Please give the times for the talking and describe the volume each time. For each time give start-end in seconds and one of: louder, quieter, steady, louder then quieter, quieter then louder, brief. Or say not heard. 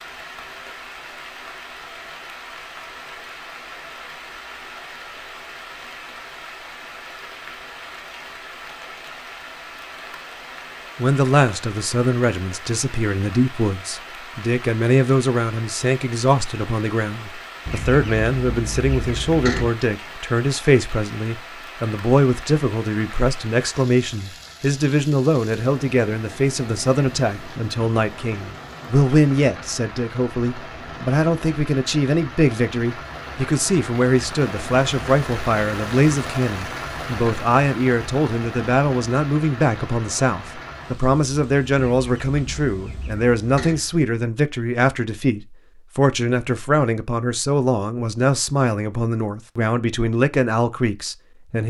10.9-51.6 steady.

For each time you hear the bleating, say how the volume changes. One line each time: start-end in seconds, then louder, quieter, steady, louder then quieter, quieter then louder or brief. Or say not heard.
not heard.